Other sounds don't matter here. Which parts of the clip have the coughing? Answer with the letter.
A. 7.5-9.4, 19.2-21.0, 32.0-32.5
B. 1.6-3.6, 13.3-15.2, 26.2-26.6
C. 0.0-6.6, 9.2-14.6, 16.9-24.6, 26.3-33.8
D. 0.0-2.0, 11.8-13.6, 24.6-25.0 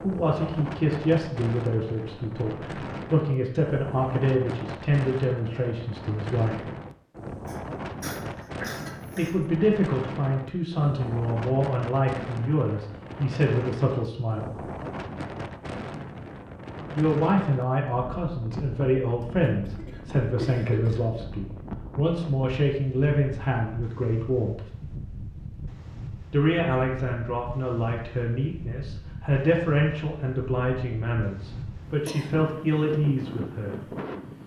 A.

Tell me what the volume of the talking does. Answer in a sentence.
The volume of the talking stays about the same.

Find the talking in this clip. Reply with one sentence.
The talking can be heard from 0.0 to 6.6 s, from 9.2 to 14.6 s, from 16.9 to 24.6 s and from 26.3 to 33.8 s.